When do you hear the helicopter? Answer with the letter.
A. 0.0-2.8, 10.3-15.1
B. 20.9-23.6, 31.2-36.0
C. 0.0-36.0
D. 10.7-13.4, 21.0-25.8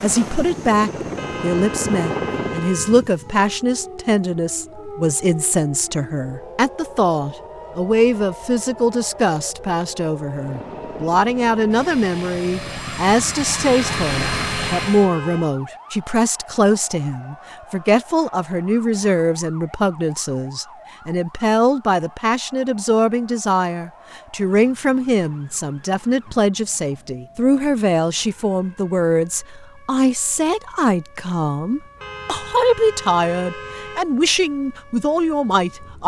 A.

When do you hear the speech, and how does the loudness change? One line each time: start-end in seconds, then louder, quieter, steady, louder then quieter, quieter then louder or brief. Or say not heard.
0.0-36.0 steady.